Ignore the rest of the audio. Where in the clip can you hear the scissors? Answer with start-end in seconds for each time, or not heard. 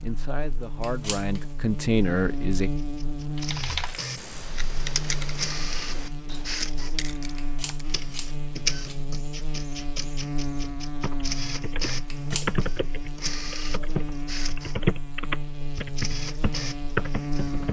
0.8-1.4, 7.3-9.0, 12.1-12.7.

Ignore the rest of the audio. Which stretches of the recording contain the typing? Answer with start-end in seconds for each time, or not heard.
3.4-7.8, 11.0-17.6.